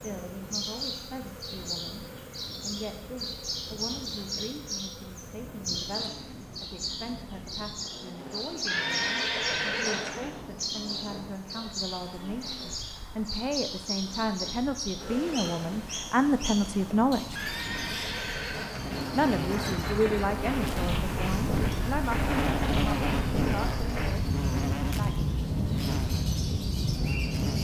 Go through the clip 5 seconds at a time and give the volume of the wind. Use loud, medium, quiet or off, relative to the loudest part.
quiet, quiet, quiet, medium, loud, loud.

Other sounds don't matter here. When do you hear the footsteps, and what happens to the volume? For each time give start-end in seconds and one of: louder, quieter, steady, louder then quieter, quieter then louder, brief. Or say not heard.
not heard.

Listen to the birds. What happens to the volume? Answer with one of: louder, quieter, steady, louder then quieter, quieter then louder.
quieter.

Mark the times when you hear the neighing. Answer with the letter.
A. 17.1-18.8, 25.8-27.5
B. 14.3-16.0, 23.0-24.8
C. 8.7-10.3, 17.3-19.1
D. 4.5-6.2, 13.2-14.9
C.